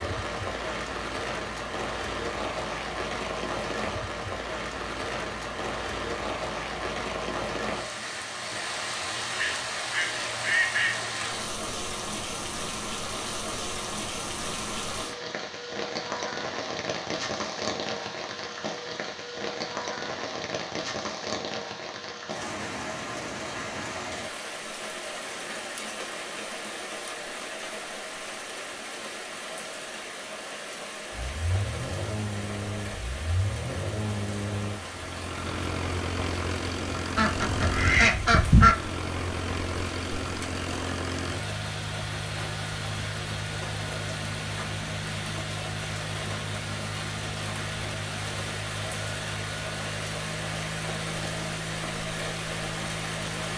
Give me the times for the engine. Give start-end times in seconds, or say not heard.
31.1-53.5.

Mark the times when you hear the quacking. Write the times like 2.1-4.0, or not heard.
9.3-11.0, 37.1-38.8.